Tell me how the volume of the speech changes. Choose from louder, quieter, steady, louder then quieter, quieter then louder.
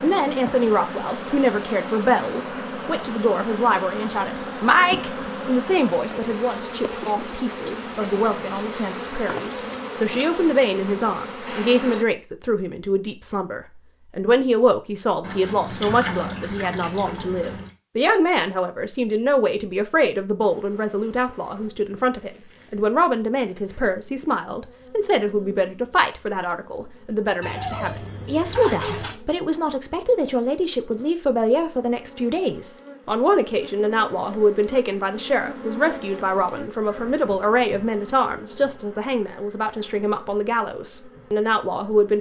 steady.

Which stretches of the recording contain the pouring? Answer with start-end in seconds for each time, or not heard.
15.2-17.7, 27.4-29.1.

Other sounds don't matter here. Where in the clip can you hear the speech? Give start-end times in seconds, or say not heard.
0.0-42.1.